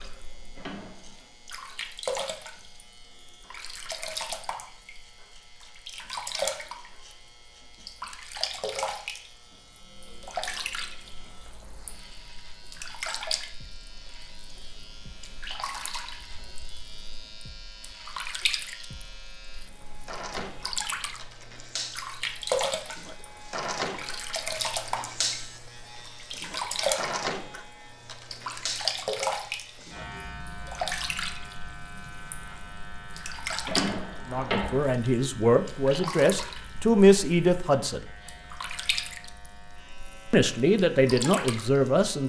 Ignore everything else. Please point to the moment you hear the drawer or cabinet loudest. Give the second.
34 s.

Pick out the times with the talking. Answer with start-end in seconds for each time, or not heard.
34.2-38.0, 40.3-42.2.